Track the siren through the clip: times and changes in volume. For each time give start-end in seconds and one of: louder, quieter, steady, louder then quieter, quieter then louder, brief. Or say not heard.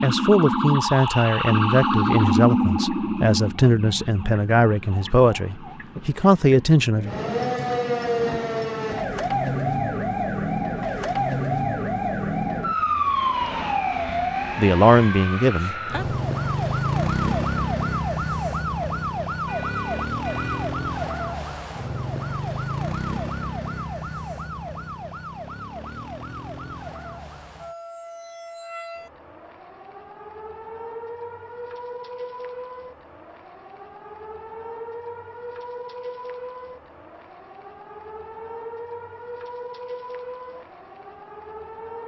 0.0-42.0 quieter.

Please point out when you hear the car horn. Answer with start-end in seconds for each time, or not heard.
19.4-20.8.